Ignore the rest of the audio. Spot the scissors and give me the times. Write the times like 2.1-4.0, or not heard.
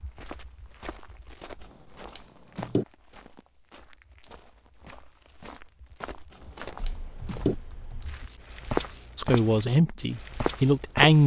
1.6-2.9, 6.3-7.5.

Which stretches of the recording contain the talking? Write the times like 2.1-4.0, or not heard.
9.2-11.2.